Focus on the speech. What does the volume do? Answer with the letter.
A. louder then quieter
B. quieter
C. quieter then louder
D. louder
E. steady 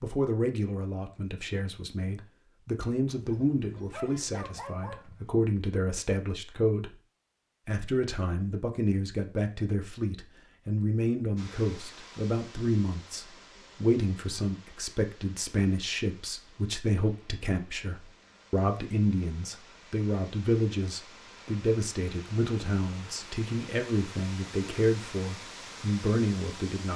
E.